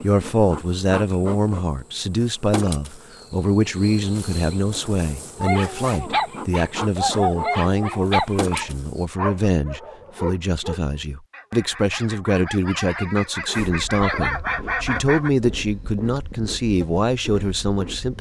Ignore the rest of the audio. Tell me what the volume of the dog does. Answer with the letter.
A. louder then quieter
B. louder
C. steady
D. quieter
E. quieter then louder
E.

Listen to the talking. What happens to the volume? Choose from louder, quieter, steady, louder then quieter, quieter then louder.
steady.